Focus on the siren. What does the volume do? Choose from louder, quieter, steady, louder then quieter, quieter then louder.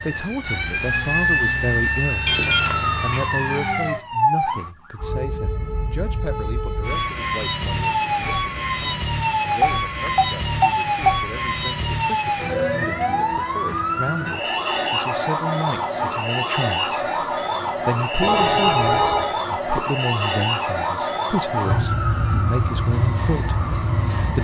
steady.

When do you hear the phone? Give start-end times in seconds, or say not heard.
2.2-3.2, 9.5-11.2, 18.2-19.4.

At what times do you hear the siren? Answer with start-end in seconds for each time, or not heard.
0.0-24.3.